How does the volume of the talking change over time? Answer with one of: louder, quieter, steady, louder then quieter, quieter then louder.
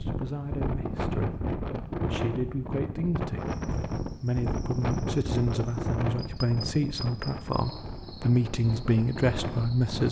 louder.